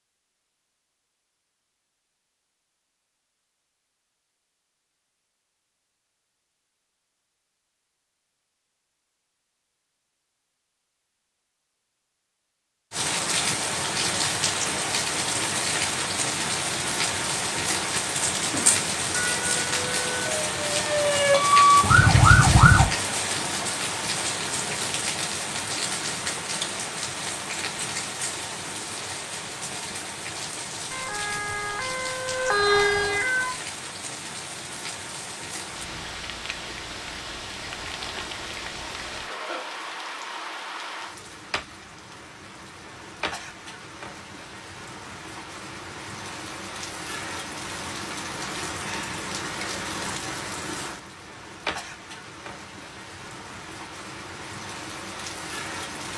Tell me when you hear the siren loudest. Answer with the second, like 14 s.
22 s.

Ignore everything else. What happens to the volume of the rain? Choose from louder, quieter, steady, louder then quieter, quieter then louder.
quieter.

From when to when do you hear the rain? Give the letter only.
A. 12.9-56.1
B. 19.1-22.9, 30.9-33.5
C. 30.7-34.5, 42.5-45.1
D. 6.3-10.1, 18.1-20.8
A.